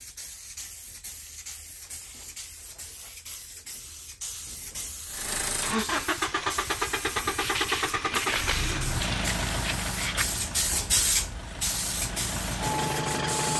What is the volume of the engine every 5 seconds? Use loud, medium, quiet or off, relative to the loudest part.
off, loud, loud.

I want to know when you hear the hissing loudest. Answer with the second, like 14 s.
11 s.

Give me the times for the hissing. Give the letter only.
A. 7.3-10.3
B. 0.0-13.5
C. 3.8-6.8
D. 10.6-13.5
B.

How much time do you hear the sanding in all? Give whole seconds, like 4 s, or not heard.
3 s.